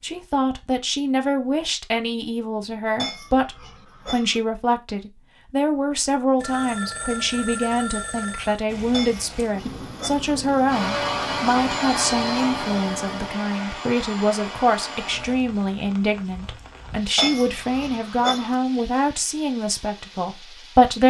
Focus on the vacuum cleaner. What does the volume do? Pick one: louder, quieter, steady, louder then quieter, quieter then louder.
quieter.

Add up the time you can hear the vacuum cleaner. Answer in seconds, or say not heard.
5 s.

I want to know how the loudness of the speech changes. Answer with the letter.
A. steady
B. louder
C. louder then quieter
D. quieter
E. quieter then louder
A.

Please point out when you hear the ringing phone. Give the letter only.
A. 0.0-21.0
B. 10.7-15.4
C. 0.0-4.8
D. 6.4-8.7
D.